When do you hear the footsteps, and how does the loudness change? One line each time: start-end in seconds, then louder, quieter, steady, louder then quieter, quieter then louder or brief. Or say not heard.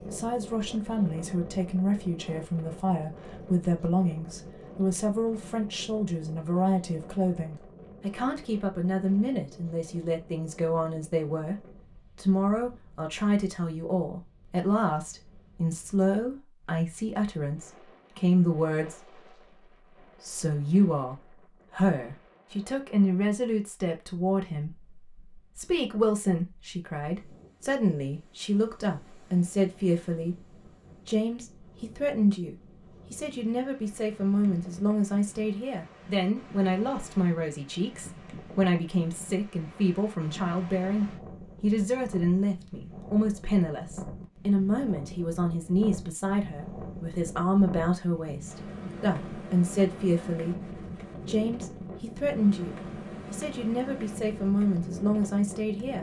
not heard.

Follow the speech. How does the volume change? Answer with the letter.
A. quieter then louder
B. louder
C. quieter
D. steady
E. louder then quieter
D.